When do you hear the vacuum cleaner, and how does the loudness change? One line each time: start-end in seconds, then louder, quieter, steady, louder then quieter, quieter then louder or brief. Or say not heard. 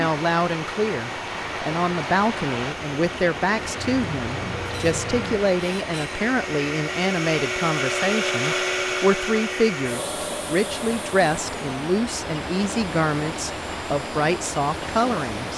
0.0-15.5 louder then quieter.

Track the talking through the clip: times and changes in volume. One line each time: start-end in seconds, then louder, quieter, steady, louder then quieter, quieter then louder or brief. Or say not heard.
0.0-15.5 steady.